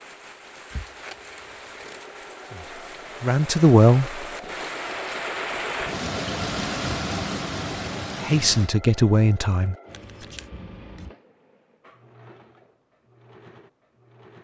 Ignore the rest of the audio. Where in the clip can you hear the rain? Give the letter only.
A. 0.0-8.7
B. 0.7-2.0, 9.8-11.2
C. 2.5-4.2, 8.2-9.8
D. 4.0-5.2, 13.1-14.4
A.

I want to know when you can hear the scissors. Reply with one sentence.
The scissors can be heard from 0.7 to 2.0 s and from 9.8 to 11.2 s.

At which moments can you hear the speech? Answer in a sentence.
The speech can be heard from 2.5 to 4.2 s and from 8.2 to 9.8 s.